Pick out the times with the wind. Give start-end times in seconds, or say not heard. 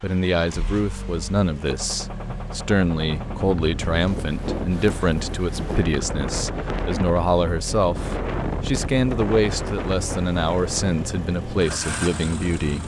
3.0-12.8.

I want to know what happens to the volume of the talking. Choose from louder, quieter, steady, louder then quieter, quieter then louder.
steady.